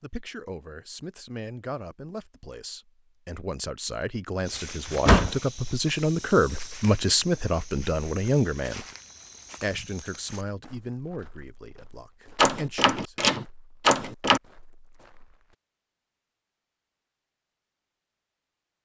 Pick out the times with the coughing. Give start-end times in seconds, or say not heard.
not heard.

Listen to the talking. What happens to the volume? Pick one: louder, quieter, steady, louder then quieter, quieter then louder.
louder then quieter.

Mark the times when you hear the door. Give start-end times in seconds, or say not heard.
4.8-5.4, 12.3-14.4.